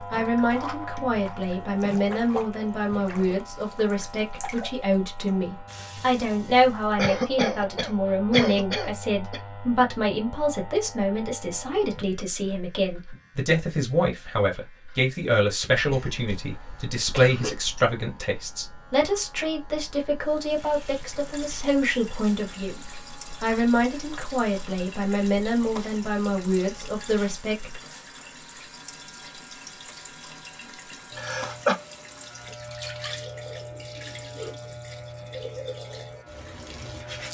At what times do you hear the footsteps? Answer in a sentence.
You can't hear the footsteps here.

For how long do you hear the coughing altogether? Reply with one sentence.
You can hear the coughing for 5 seconds altogether.